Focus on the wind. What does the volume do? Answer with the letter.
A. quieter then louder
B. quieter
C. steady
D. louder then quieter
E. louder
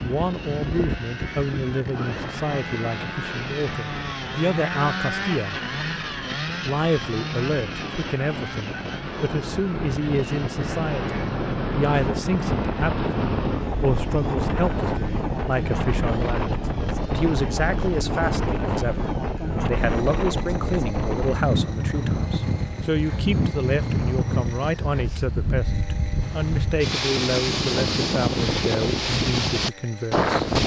E.